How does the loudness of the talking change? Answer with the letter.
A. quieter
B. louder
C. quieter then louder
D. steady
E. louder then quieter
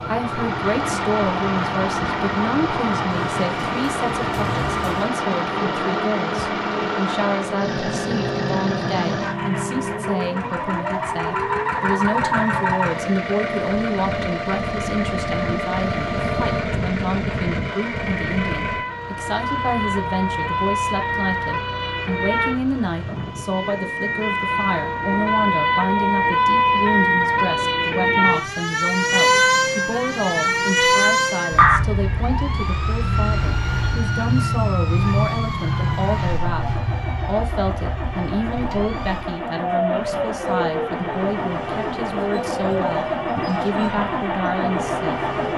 D.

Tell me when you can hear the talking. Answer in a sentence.
The talking can be heard from 0.0 to 45.2 s.